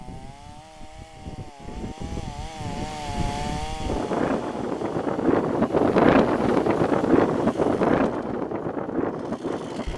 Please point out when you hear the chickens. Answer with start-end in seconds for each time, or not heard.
not heard.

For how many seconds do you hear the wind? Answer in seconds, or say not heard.
10 s.